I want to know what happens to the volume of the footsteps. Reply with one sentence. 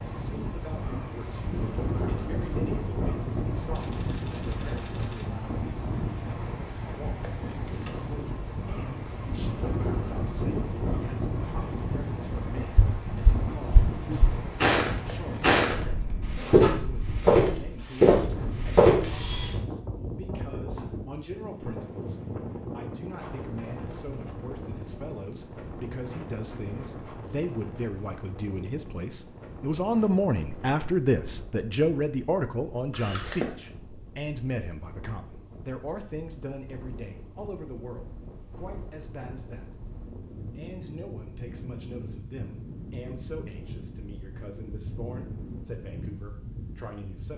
The volume of the footsteps goes up.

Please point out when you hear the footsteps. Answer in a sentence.
You can hear the footsteps from 12.7 to 19.1 s.